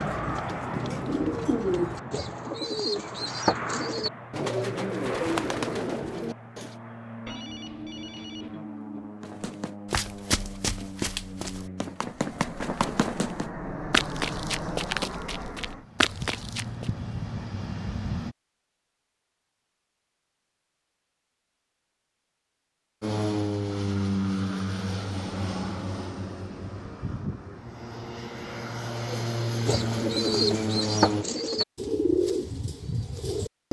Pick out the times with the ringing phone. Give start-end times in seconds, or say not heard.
7.2-9.2.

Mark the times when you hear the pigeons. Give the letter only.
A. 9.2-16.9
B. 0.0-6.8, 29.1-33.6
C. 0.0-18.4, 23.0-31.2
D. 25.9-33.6
B.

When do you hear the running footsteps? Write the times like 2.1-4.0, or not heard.
9.2-16.9.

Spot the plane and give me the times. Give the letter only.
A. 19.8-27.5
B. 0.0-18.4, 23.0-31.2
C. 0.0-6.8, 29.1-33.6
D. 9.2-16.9
B.